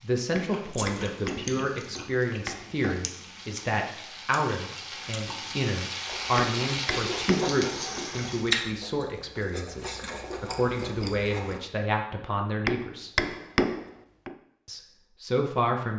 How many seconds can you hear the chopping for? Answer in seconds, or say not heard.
6 s.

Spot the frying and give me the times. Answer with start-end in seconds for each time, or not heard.
0.0-8.6.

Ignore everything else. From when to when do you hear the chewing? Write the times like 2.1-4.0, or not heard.
0.5-11.6.